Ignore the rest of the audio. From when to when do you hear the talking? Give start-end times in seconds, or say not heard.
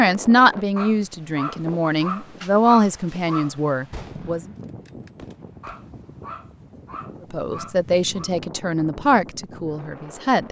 0.0-4.5, 7.3-10.4.